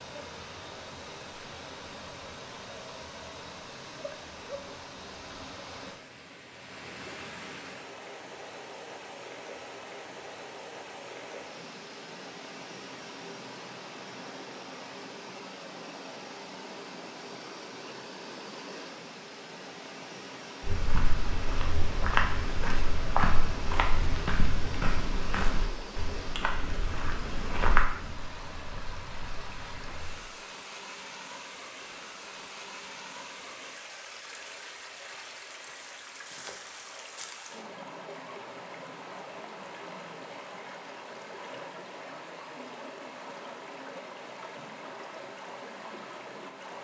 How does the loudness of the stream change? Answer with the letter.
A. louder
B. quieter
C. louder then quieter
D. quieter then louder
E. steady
E.